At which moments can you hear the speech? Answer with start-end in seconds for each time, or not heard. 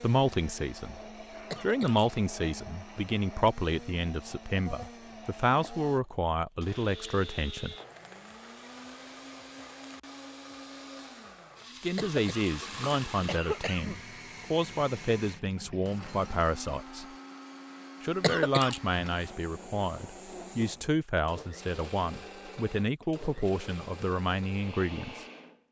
0.0-1.0, 1.6-7.8, 11.8-17.1, 18.0-25.2.